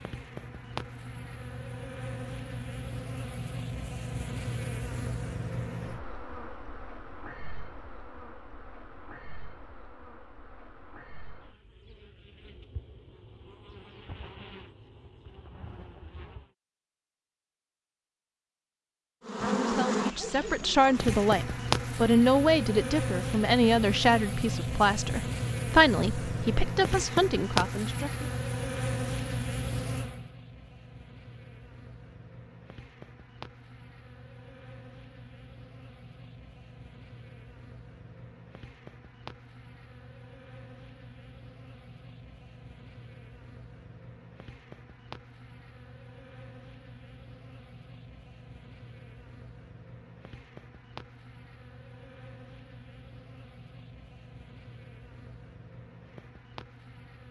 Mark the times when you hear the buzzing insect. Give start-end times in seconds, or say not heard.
0.0-16.5, 19.2-57.2.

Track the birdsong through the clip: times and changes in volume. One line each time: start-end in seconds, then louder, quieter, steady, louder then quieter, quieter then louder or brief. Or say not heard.
not heard.